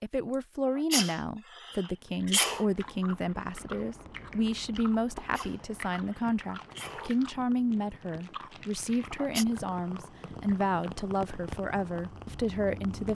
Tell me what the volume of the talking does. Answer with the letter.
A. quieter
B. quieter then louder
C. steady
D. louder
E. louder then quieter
C.